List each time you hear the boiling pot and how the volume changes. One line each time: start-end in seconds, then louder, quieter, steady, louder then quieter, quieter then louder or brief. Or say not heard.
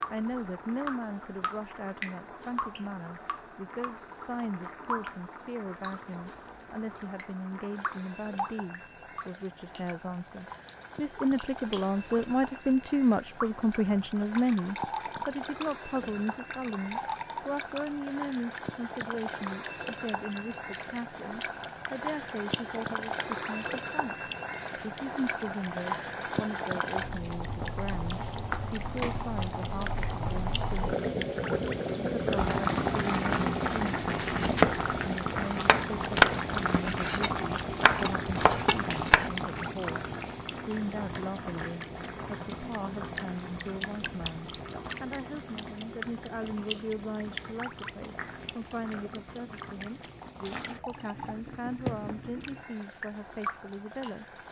0.0-54.4 louder then quieter.